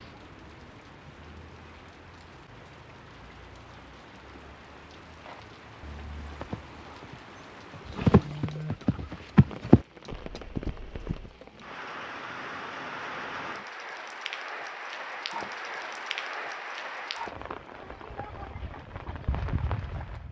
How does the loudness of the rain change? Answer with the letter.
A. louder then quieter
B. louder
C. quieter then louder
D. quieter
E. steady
B.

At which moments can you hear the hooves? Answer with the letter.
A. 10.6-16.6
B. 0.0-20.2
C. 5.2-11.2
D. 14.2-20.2
C.